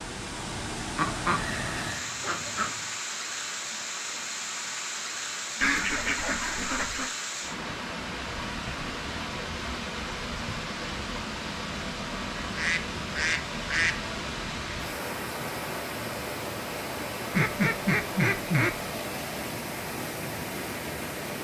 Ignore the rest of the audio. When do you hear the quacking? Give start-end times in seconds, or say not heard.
0.9-2.9, 5.6-7.1, 12.3-14.0, 17.3-18.8.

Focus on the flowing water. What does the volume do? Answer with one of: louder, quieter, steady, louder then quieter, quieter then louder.
steady.